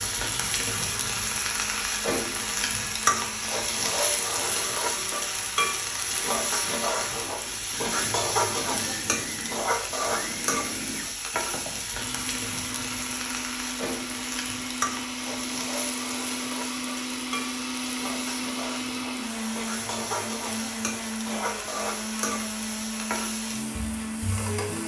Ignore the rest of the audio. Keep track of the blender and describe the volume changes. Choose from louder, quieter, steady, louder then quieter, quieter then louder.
louder.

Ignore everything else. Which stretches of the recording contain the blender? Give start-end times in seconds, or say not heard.
0.0-24.8.